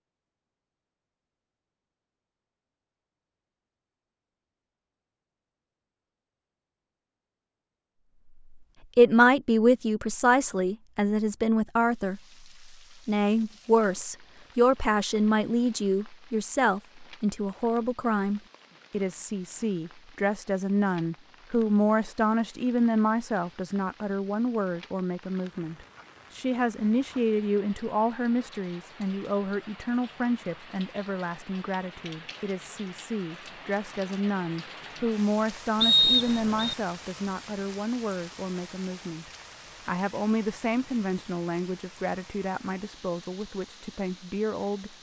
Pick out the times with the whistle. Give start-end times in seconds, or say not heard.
35.8-36.8.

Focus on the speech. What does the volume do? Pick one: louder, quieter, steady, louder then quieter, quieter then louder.
quieter.